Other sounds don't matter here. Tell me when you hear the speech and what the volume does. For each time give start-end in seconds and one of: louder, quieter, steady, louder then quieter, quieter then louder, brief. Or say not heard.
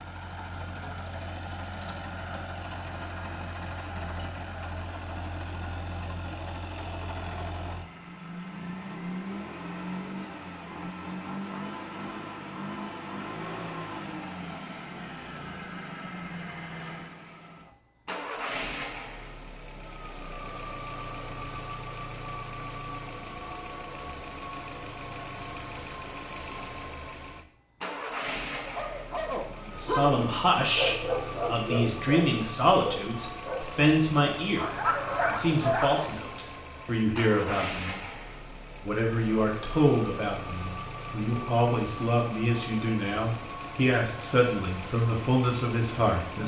29.6-38.0 steady
38.8-46.4 steady.